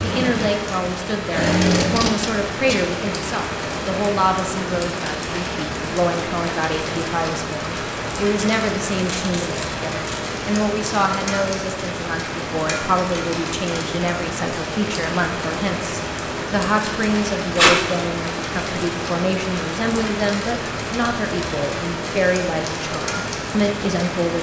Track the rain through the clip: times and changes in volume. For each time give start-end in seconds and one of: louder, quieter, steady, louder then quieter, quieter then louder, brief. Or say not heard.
0.0-24.3 steady.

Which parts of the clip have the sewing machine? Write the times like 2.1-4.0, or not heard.
0.0-2.1.